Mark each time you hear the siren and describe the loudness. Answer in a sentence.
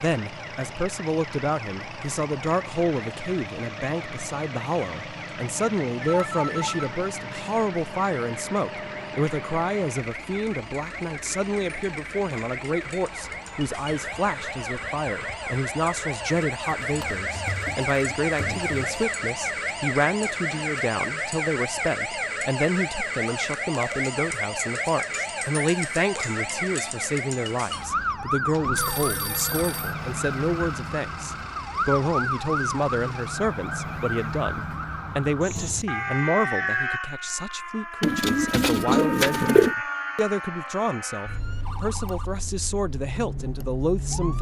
The siren can be heard from 0.0 to 44.3 s, getting louder.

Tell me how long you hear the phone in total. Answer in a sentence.
You can hear the phone for 3 seconds altogether.